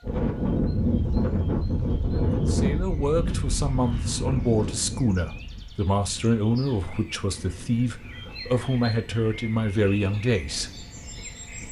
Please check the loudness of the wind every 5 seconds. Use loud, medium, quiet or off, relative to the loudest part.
loud, quiet, quiet.